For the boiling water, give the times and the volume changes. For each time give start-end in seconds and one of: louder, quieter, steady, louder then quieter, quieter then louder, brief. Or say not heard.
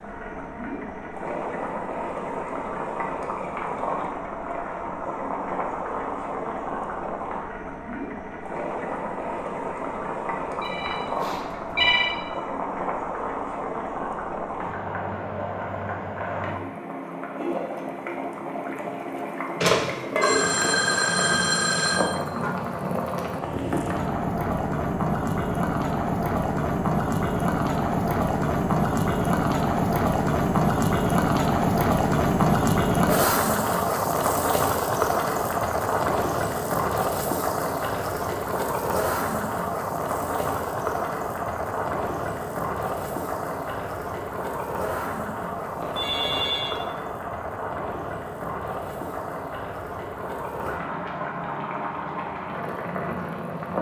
0.0-53.7 louder then quieter.